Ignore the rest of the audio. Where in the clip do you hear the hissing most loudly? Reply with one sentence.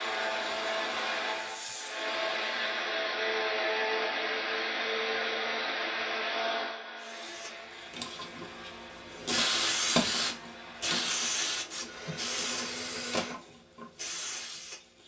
The volume of the hissing peaks at 10 seconds.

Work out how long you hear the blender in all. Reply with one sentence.
You can hear the blender for 13 seconds altogether.